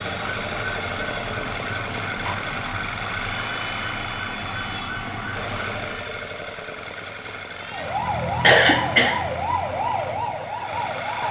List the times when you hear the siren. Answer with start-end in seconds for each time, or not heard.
0.0-6.2, 7.5-11.2.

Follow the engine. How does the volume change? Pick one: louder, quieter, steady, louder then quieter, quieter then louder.
quieter.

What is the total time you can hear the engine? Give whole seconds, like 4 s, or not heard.
11 s.